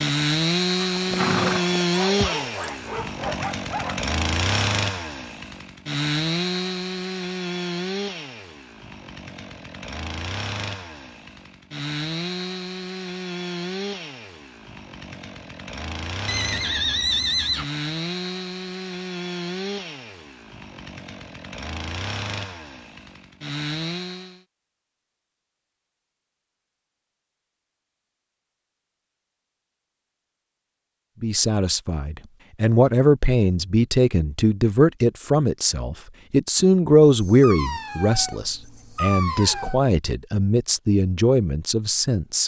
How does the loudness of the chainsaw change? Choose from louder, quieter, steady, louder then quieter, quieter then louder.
quieter.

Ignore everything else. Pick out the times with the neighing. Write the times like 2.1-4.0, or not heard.
0.8-2.7, 16.2-17.6, 39.2-39.8.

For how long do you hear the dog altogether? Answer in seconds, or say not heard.
6 s.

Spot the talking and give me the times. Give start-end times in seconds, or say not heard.
31.2-42.4.